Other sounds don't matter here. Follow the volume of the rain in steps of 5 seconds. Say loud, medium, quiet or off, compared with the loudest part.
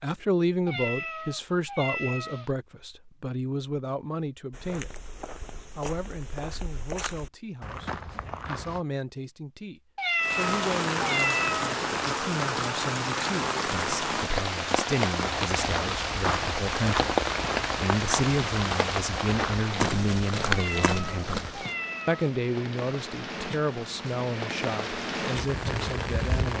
off, off, loud, loud, medium, loud.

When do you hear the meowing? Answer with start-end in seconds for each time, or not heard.
0.7-2.5, 9.9-11.7, 20.5-22.4.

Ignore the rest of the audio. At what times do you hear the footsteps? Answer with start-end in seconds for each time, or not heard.
4.5-8.8, 15.2-21.4.